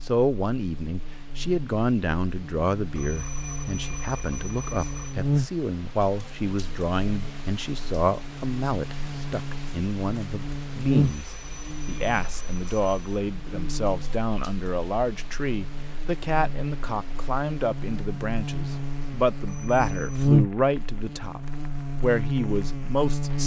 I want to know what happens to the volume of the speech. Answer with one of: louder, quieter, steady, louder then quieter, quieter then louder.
steady.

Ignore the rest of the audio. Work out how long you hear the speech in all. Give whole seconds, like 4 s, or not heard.
23 s.